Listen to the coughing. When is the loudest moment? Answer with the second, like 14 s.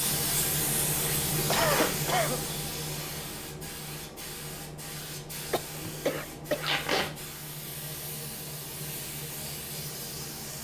2 s.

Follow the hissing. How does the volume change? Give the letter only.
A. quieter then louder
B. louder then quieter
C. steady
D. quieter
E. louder
D.